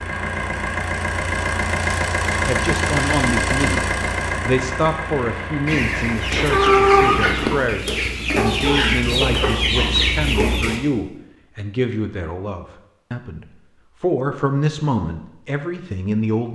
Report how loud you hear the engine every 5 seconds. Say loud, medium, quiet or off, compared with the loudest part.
loud, medium, off, off.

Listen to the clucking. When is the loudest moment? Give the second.
7 s.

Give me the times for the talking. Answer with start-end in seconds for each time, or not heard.
2.4-3.8, 4.5-16.5.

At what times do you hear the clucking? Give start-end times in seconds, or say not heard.
5.7-10.8.